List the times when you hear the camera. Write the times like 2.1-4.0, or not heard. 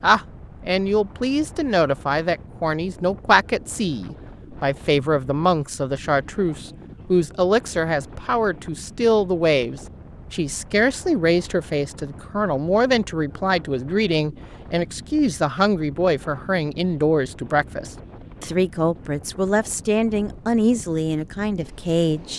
not heard.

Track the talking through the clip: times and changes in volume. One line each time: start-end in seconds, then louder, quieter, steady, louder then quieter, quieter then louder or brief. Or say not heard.
0.0-22.3 steady.